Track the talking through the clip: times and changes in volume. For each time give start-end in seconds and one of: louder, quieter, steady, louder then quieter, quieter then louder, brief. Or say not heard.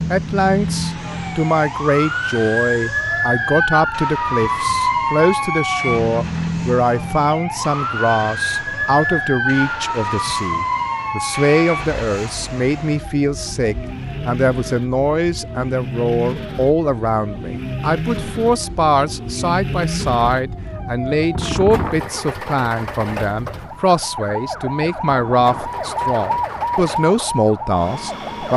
0.0-28.5 steady.